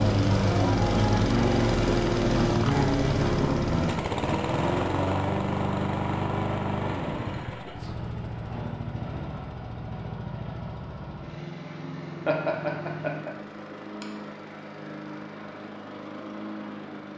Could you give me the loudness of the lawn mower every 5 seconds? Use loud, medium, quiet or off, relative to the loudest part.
loud, medium, quiet, quiet.